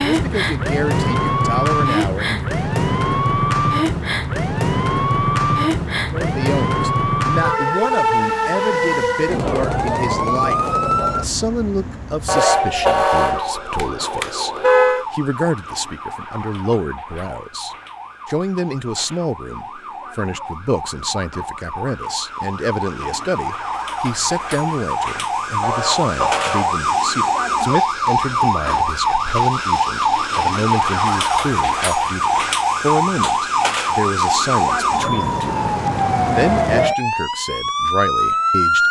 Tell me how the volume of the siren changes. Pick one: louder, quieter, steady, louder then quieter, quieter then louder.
quieter then louder.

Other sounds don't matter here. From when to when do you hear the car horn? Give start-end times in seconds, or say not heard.
12.2-15.1, 25.6-26.9.